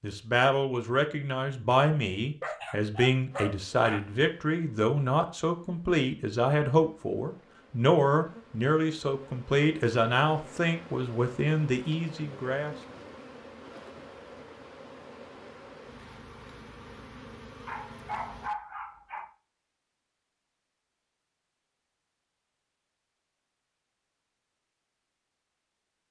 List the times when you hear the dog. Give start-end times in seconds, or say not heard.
2.4-4.0, 17.6-19.3.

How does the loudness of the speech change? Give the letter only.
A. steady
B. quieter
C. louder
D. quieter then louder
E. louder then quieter
A.